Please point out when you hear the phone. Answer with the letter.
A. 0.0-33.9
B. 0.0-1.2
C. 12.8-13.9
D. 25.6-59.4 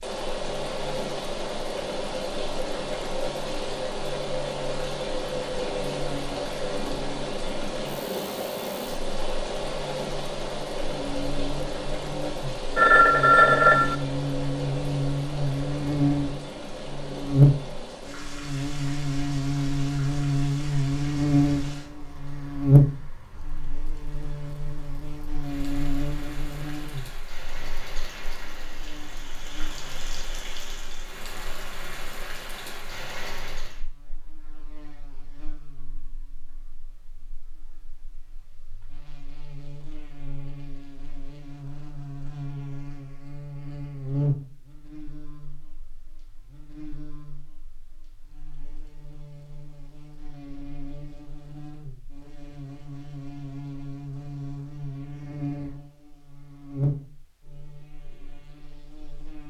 C.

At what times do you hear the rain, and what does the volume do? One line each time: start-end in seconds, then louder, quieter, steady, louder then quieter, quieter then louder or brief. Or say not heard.
0.0-33.9 quieter then louder.